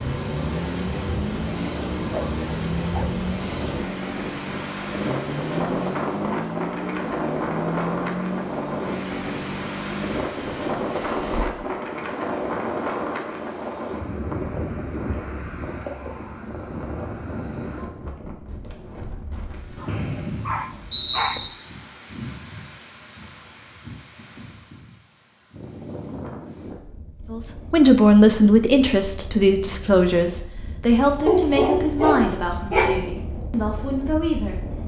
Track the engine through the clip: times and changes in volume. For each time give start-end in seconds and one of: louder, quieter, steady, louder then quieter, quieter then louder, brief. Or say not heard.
0.0-11.6 steady.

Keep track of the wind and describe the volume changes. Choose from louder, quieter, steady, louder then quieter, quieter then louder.
quieter.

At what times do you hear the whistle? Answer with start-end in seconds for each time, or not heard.
19.9-21.5.